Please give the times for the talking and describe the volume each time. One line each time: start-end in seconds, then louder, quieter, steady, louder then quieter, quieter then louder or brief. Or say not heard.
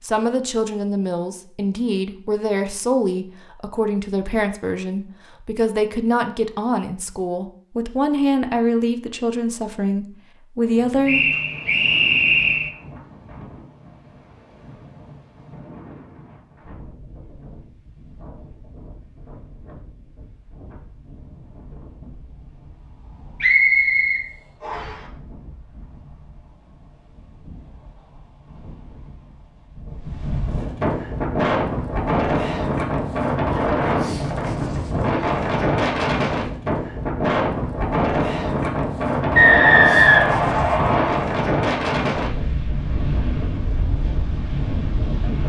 0.0-11.2 steady.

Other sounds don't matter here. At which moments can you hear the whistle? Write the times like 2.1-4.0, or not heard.
11.1-12.7, 23.4-25.0, 39.4-41.1.